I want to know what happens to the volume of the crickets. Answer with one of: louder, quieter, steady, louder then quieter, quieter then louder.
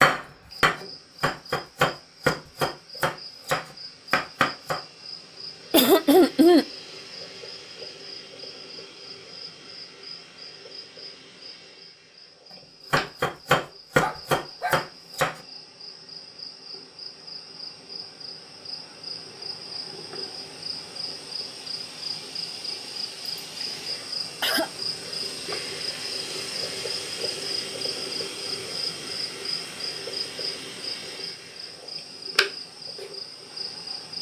louder.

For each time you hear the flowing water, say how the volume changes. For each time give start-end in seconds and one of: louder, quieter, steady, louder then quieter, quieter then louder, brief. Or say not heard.
not heard.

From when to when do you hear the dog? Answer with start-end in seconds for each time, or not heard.
13.9-14.8.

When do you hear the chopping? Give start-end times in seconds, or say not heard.
0.0-4.8, 12.9-15.4.